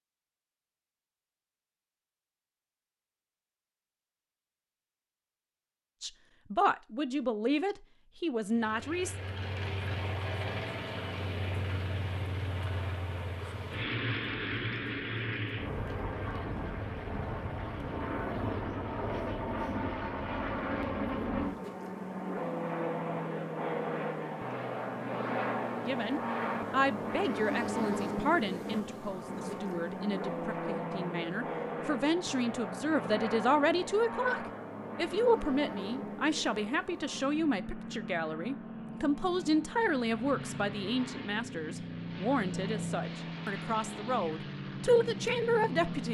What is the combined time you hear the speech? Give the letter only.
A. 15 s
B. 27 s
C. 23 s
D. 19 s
C.